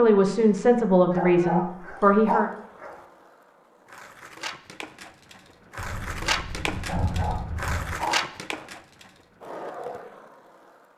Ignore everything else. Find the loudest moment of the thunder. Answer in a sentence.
The volume of the thunder peaks at 7 seconds.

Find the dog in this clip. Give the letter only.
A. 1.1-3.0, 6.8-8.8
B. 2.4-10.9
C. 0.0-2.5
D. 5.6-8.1
A.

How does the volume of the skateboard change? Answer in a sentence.
The loudness of the skateboard goes up, then down.